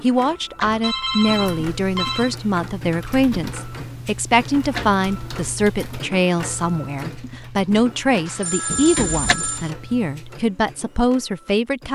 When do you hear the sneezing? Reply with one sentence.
You can't hear the sneezing here.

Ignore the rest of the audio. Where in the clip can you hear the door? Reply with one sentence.
You can hear the door from 0.2 to 0.9 s, from 4.2 to 5.0 s and from 8.7 to 9.3 s.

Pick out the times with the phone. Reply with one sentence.
You can hear the phone from 0.8 to 2.4 s and from 8.2 to 9.7 s.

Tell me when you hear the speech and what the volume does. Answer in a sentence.
The speech can be heard from 0.0 to 11.9 s, at a steady volume.